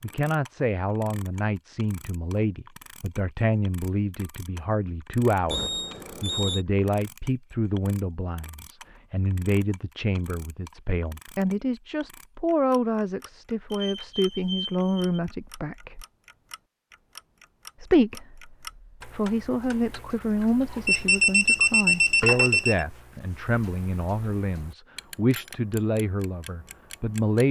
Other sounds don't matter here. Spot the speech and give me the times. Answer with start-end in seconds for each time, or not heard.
0.0-16.1, 17.8-27.4.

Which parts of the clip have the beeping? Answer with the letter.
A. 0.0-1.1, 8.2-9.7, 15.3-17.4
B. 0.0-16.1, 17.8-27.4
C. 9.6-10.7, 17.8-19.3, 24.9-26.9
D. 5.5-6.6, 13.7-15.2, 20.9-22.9
D.